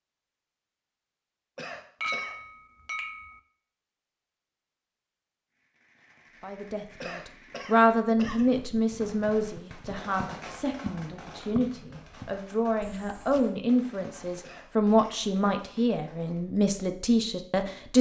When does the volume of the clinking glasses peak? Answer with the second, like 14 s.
2 s.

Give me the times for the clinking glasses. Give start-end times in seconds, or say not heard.
2.0-3.4.